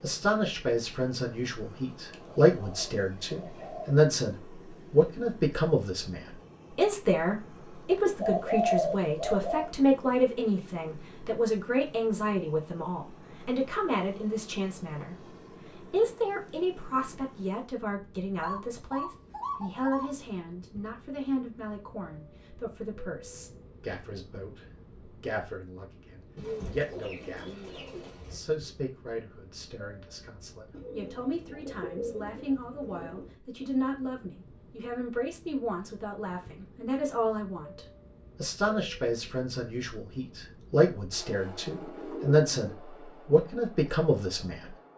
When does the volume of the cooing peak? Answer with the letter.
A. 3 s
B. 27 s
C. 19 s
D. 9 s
D.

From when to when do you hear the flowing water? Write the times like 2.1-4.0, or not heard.
not heard.